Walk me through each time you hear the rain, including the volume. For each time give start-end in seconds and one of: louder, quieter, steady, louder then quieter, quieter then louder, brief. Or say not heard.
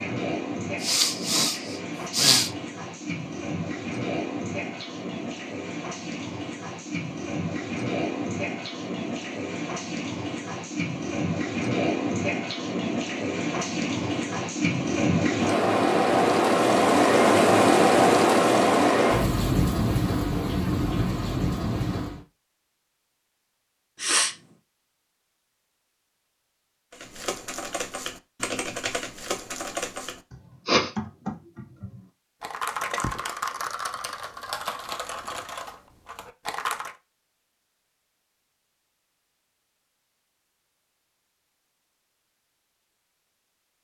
0.0-22.2 louder.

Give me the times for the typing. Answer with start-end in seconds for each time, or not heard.
26.9-37.0.